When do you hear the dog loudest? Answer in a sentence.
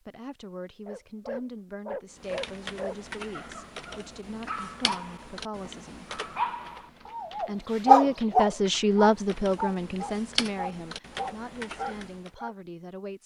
The loudest moment of the dog is at 8 seconds.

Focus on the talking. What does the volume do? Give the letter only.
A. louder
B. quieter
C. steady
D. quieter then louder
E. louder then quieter
E.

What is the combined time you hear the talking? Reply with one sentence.
The talking can be heard for 12 seconds in total.